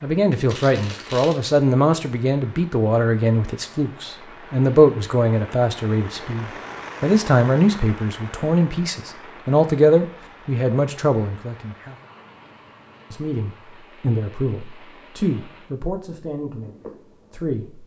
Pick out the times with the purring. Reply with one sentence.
The purring can't be heard in this clip.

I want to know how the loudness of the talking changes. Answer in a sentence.
The volume of the talking goes down.